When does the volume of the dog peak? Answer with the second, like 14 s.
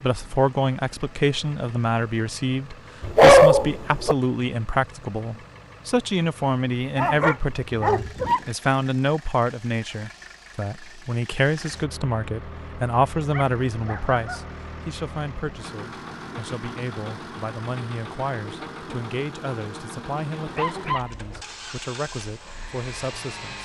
3 s.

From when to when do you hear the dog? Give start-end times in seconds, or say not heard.
3.0-4.2, 7.0-8.4, 13.3-14.5, 20.4-21.1.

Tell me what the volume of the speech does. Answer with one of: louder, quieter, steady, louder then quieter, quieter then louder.
quieter.